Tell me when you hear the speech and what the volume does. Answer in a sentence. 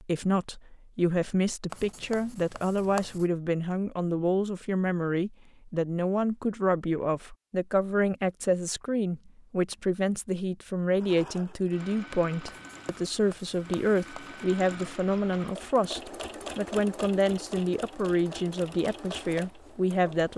The speech can be heard from 0.0 to 20.3 s, at a steady volume.